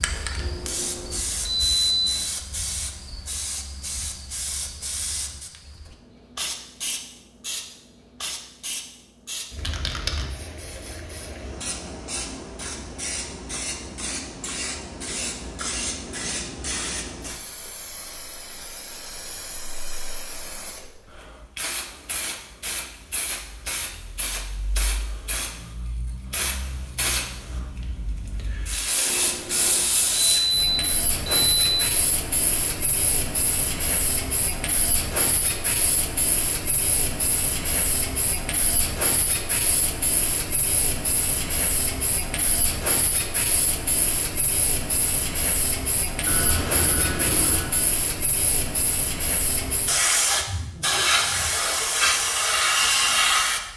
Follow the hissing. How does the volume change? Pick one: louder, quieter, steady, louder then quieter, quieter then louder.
louder.